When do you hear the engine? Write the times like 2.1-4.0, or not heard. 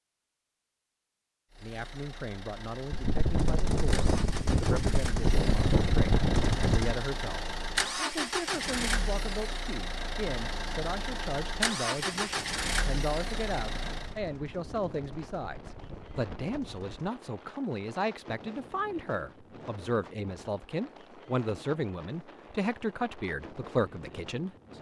1.5-14.2.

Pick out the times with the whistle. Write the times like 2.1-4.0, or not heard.
not heard.